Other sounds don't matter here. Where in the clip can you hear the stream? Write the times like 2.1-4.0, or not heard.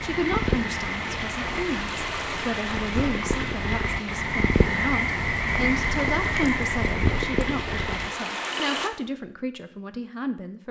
0.0-8.9.